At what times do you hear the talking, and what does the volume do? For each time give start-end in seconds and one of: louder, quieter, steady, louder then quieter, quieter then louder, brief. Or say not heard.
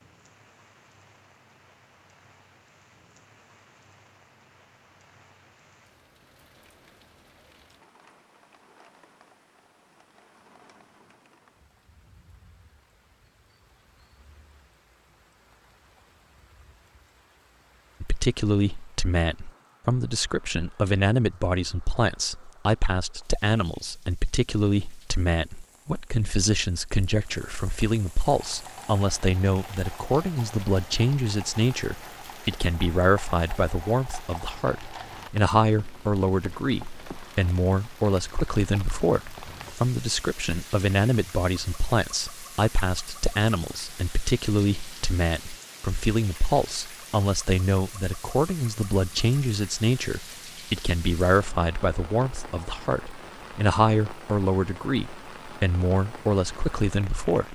18.0-57.4 steady.